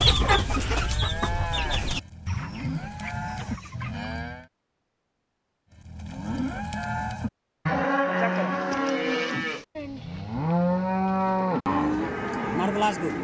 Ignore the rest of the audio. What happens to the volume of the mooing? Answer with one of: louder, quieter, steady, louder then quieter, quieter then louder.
louder.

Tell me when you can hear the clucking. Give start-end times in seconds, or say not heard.
0.0-4.1.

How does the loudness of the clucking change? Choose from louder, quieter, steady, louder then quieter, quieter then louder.
quieter.